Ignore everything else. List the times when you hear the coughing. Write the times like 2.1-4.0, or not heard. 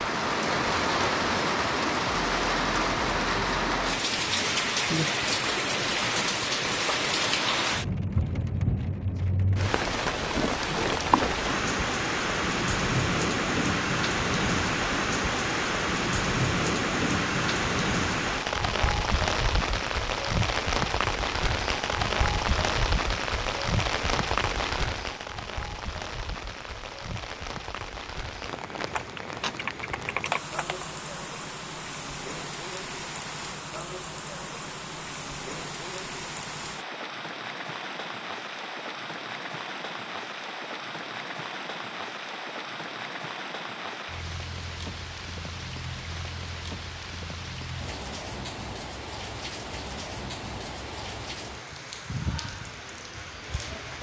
not heard.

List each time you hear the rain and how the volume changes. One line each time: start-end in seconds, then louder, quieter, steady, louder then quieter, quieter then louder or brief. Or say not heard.
0.0-53.9 quieter.